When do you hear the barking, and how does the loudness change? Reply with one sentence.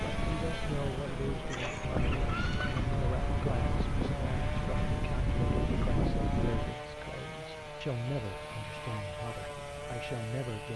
You can't hear the barking here.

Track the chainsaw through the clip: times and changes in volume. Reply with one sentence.
You can hear the chainsaw from 0.0 to 10.7 s, at a steady volume.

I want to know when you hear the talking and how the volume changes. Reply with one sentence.
You can hear the talking from 0.2 to 10.7 s, at a steady volume.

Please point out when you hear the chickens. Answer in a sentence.
The chickens can be heard from 1.4 to 3.0 s.